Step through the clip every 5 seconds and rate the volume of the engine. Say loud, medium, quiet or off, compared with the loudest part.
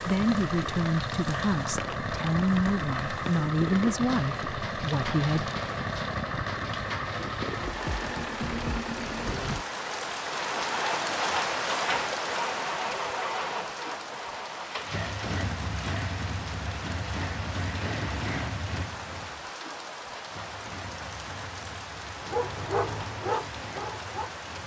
loud, loud, loud, loud, quiet.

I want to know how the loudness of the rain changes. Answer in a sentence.
The volume of the rain goes up, then down.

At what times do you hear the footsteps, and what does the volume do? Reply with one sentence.
The footsteps can't be heard in this clip.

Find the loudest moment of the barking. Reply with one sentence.
The volume of the barking peaks at 23 seconds.